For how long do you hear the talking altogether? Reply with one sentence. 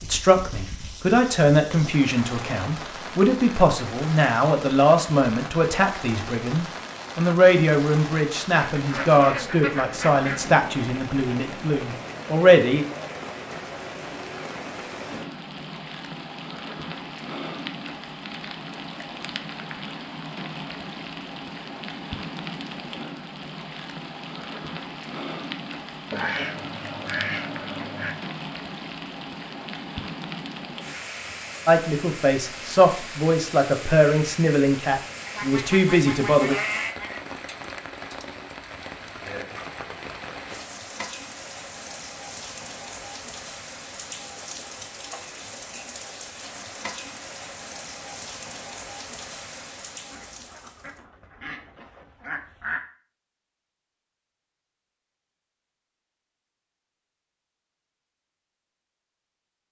You can hear the talking for 18 seconds altogether.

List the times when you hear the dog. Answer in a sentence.
The dog can't be heard in this clip.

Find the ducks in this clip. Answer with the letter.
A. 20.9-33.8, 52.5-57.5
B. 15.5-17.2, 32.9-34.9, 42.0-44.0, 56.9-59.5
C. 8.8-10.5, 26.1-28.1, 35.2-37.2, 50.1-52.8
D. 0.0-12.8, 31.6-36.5
C.